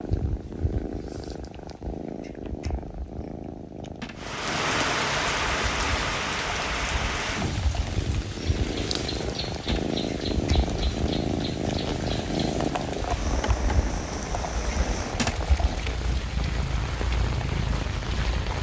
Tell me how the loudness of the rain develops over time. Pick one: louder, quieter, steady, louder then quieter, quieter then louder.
quieter.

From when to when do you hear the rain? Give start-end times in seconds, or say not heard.
4.2-18.5.